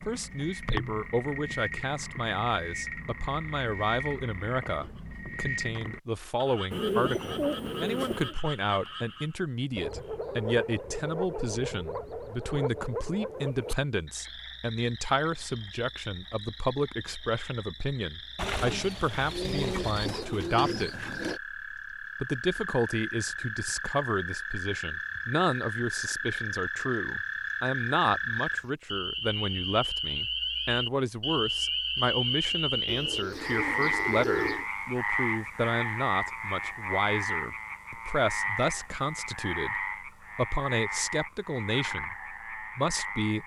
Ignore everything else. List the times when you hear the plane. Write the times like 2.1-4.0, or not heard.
not heard.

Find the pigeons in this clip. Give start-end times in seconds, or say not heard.
6.7-8.3, 18.4-21.4, 32.9-34.6.